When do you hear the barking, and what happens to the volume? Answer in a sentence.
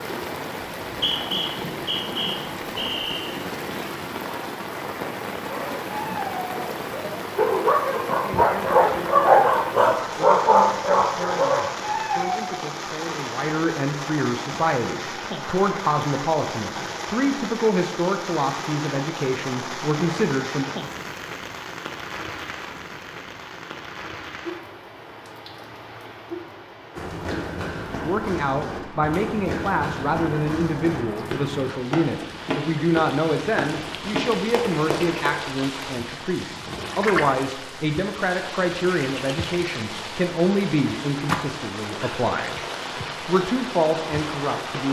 You can hear the barking from 5.5 to 12.6 s, getting louder then quieter.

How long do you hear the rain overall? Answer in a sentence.
You can hear the rain for 45 seconds altogether.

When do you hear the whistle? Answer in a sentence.
The whistle can be heard from 0.8 to 3.4 s.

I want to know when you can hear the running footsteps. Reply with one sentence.
You can hear the running footsteps from 26.9 to 35.4 s.